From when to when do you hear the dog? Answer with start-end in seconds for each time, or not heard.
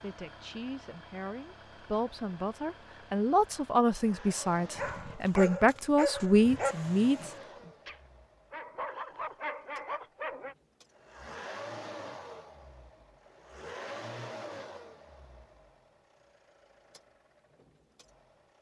4.8-10.6.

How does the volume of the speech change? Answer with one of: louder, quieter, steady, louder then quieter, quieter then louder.
louder.